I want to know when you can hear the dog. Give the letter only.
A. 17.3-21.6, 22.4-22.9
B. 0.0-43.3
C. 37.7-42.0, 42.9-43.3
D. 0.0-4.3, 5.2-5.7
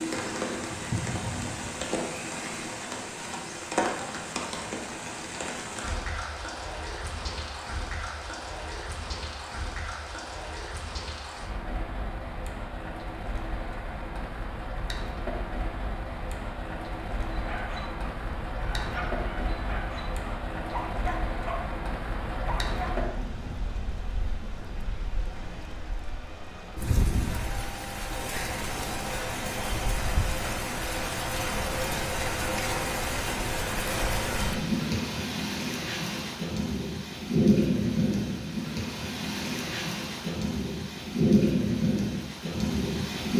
A.